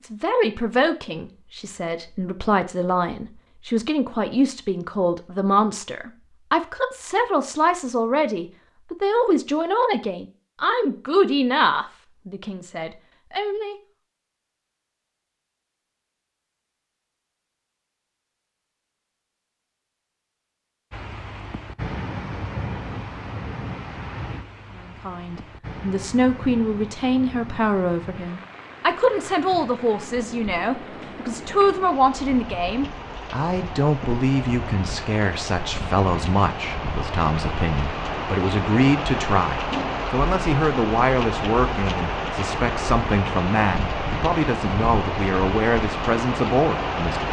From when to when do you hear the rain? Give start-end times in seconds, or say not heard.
20.9-47.2.